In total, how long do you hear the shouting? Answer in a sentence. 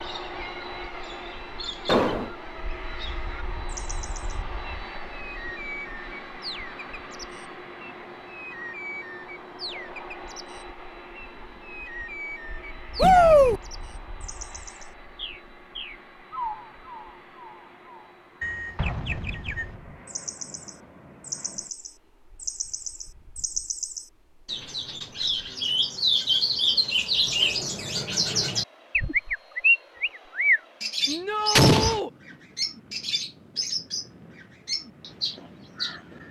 You can hear the shouting for 2 seconds altogether.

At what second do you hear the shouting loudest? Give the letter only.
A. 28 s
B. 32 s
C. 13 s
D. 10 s
C.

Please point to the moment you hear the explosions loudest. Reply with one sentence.
The loudest moment of the explosions is at 32 seconds.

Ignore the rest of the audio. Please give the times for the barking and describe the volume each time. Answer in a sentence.
You can't hear the barking here.